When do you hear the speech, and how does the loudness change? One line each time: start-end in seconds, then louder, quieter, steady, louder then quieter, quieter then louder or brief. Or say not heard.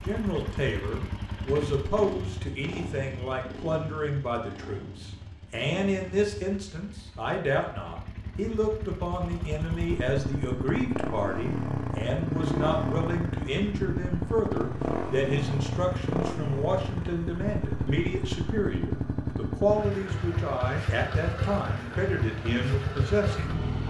0.0-23.6 steady.